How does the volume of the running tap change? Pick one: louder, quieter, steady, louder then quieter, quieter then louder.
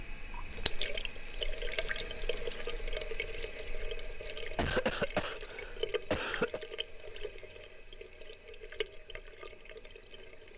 quieter.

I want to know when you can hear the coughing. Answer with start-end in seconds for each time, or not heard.
4.5-6.6.